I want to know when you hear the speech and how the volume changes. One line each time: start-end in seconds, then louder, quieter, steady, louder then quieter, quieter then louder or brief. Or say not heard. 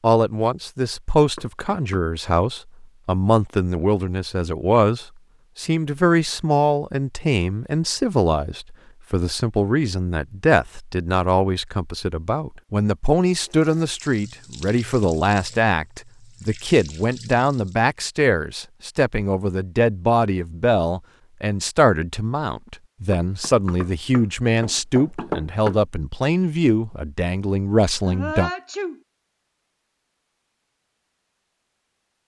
0.0-28.5 steady.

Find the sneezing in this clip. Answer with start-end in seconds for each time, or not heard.
28.1-29.0.